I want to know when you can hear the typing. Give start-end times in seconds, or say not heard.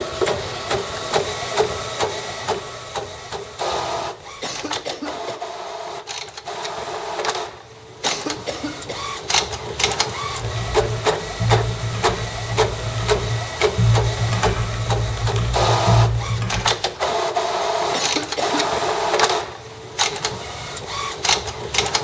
10.3-16.6.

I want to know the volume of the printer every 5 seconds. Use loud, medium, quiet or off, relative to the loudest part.
loud, medium, loud, loud, loud.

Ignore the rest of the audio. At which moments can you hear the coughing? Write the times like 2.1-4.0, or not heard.
4.4-5.4, 8.0-9.1, 17.9-18.6.